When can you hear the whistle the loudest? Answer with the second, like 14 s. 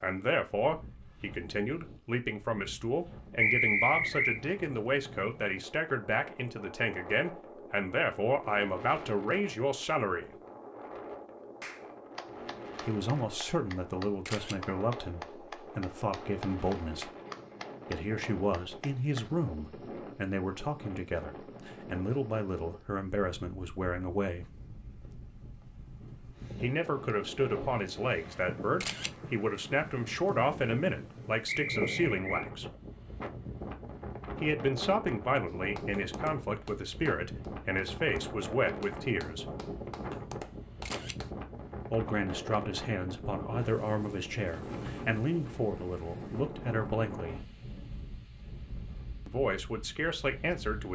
4 s.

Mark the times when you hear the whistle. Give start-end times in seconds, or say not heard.
3.4-4.4, 31.4-32.5.